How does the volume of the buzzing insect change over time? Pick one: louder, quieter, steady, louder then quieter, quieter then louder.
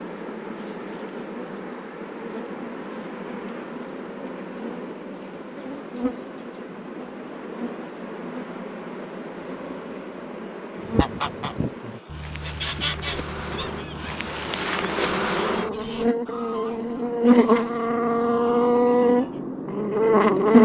louder.